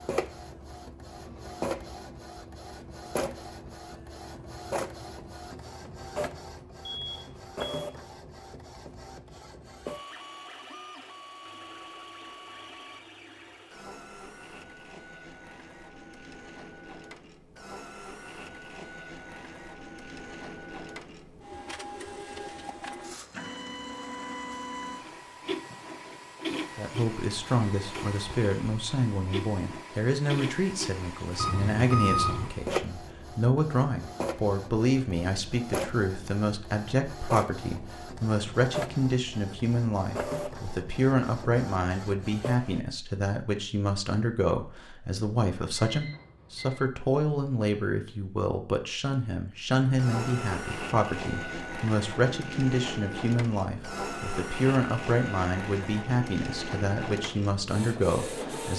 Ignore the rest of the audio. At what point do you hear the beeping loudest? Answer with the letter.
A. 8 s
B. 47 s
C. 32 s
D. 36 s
C.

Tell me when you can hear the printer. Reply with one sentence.
You can hear the printer from 0.0 to 42.8 s and from 49.8 to 58.7 s.